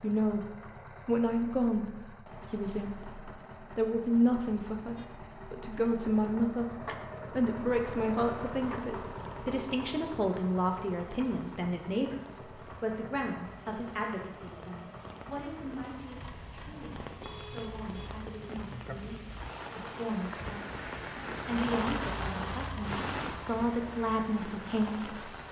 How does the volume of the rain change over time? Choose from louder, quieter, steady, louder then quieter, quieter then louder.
louder.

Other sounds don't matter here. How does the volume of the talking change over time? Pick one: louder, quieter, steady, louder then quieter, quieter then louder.
quieter then louder.